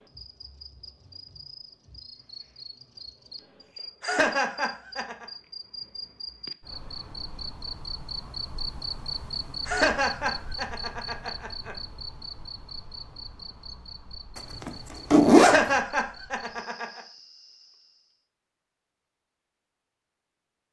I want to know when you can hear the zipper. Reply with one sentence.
You can hear the zipper from 14.6 to 15.6 s.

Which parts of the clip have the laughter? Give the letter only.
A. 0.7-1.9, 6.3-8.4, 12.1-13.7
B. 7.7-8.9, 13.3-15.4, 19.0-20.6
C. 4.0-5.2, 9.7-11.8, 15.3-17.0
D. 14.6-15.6
C.